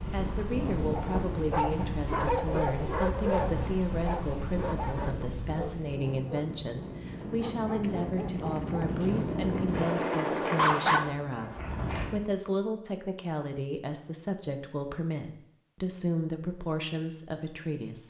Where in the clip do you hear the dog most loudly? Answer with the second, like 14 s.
11 s.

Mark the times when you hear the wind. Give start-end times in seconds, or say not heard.
0.0-12.2.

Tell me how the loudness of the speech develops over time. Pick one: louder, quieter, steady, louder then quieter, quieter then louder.
steady.